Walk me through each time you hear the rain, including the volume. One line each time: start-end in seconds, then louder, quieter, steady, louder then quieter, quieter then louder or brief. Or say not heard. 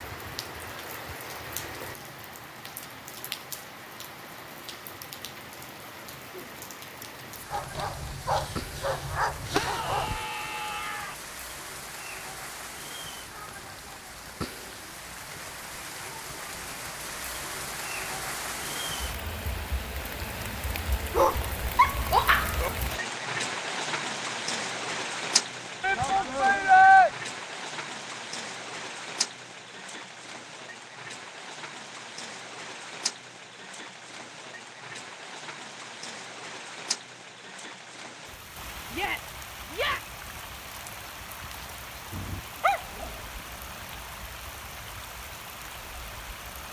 0.0-46.6 louder then quieter.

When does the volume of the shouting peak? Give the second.
27 s.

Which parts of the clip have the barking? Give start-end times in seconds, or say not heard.
7.5-10.2, 21.1-22.7, 42.1-43.1.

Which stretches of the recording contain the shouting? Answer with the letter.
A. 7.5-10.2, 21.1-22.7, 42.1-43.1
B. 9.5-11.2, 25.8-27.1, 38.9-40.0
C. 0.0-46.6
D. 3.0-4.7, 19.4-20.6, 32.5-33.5
B.